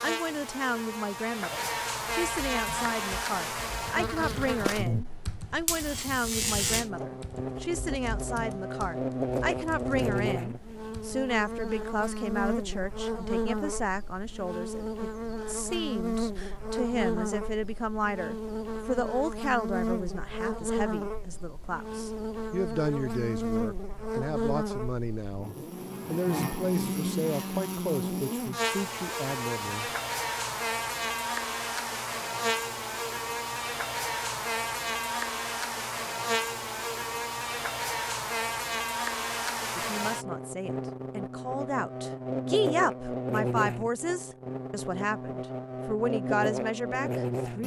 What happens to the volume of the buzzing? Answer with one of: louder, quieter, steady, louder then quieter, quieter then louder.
steady.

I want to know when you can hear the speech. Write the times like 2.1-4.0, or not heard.
0.0-29.9, 39.8-47.6.